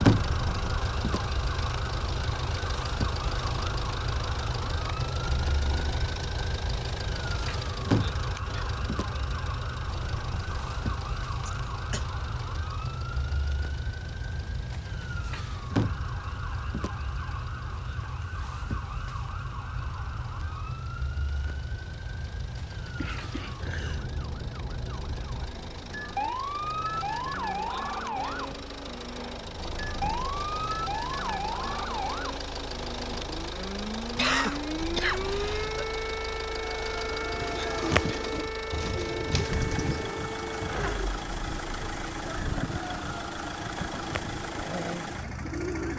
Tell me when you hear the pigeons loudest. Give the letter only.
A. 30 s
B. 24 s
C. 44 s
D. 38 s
D.